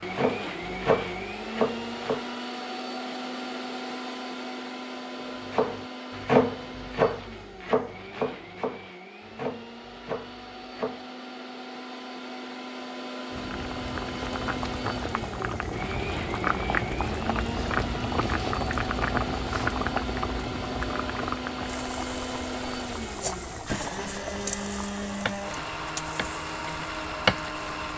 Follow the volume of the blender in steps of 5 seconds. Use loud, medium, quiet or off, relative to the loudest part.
loud, medium, loud, loud, loud, loud.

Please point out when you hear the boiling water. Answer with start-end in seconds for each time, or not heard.
13.3-27.9.